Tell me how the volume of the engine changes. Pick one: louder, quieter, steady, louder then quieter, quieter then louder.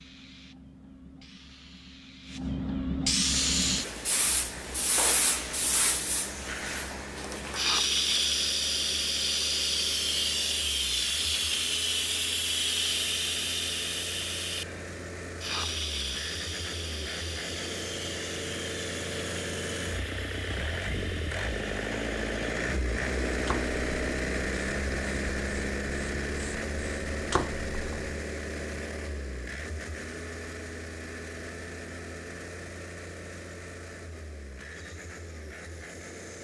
louder then quieter.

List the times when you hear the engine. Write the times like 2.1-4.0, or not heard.
3.3-36.4.